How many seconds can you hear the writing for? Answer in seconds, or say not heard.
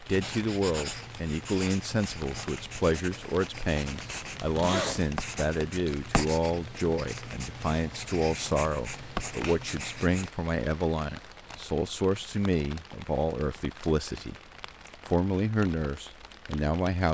10 s.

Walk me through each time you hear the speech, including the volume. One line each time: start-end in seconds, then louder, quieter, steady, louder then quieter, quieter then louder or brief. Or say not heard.
0.0-14.4 steady
15.1-17.0 brief.